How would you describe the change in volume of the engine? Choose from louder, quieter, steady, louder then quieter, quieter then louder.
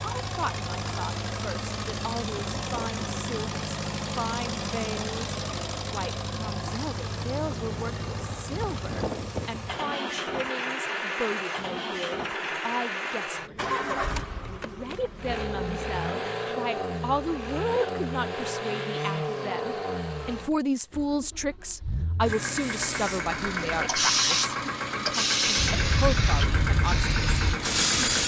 steady.